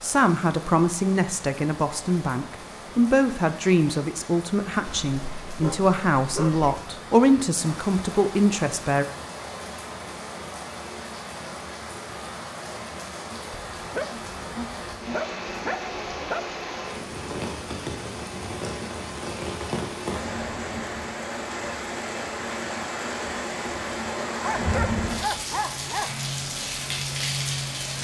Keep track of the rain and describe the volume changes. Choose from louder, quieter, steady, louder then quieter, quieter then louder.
louder.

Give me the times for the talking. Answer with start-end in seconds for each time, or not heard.
0.0-9.1.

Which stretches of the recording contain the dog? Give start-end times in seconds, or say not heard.
4.8-6.8, 13.5-16.4, 24.4-26.1.